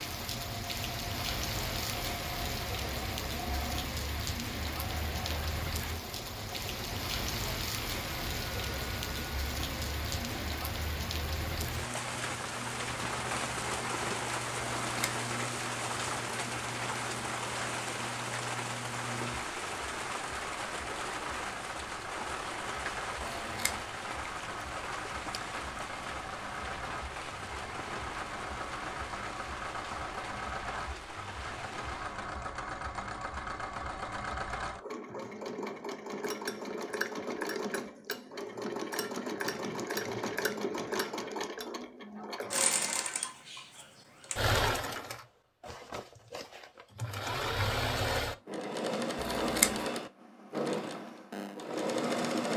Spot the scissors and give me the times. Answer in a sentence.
You can hear the scissors from 14.8 to 15.2 s, from 23.2 to 23.8 s and from 49.1 to 49.9 s.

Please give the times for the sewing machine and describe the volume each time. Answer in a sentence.
You can hear the sewing machine from 0.0 to 52.5 s, getting louder.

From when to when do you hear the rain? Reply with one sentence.
The rain can be heard from 0.0 to 32.2 s.